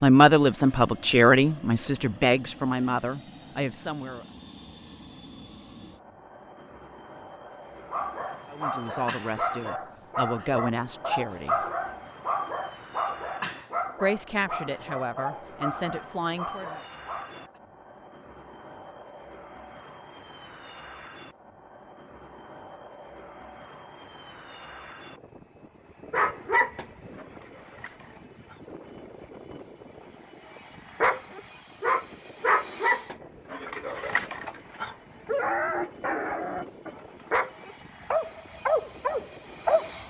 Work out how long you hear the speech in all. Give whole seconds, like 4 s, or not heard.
10 s.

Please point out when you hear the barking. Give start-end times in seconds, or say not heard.
7.5-17.5, 26.1-28.6, 31.0-40.0.